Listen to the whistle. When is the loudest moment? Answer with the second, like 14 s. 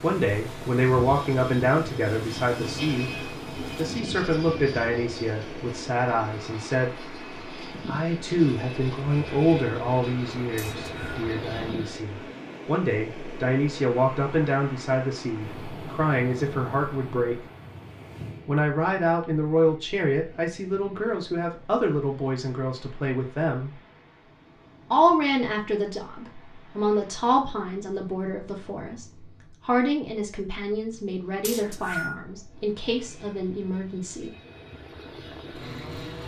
32 s.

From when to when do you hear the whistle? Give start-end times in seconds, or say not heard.
10.6-11.2, 31.4-32.1.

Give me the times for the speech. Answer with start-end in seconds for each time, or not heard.
0.0-7.0, 7.8-17.4, 18.4-23.7, 24.9-34.3.